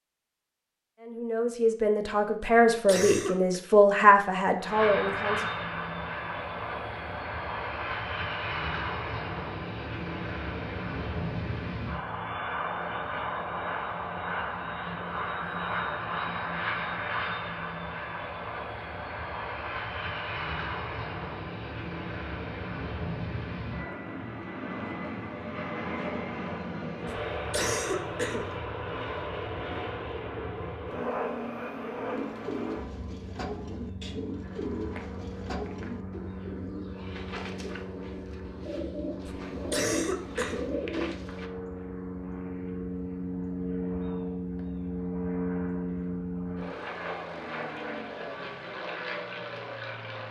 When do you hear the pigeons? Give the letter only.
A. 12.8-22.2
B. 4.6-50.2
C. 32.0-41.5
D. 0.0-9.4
C.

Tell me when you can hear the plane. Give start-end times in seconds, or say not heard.
4.6-50.2.